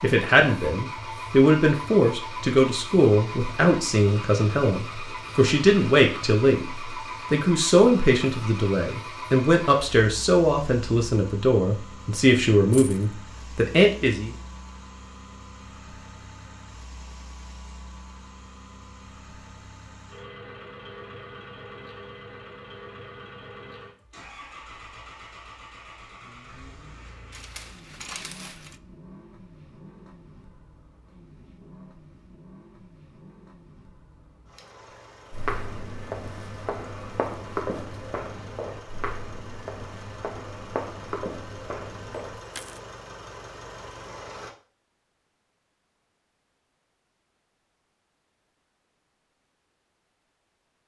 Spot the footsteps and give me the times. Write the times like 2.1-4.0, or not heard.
35.3-42.4.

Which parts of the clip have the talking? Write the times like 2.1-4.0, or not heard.
0.0-6.7, 7.3-14.3.